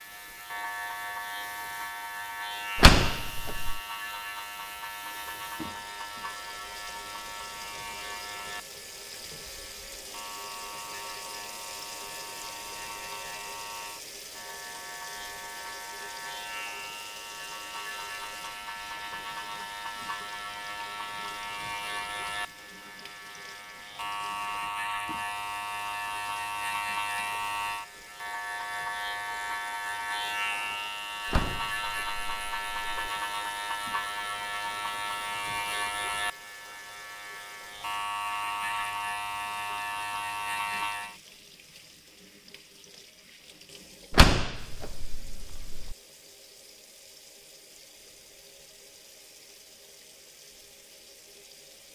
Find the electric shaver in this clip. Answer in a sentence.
You can hear the electric shaver from 0.0 to 41.1 s.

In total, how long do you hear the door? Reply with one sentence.
You can hear the door for 5 seconds altogether.